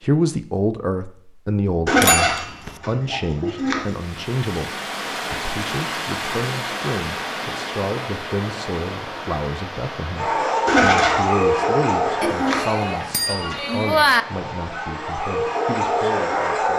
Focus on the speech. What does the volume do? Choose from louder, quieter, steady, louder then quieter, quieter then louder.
quieter.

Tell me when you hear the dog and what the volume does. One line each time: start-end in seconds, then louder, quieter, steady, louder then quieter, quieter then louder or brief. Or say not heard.
10.2-16.7 quieter then louder.